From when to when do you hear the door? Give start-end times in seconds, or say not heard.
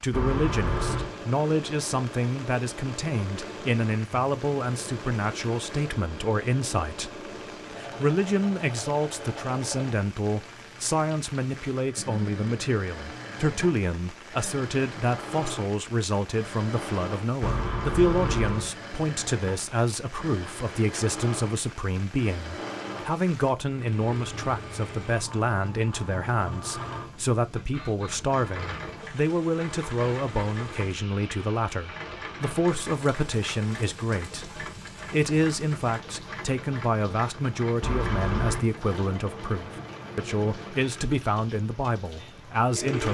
0.1-1.1, 17.4-18.7, 37.8-38.6.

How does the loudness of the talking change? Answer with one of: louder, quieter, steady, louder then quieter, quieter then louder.
steady.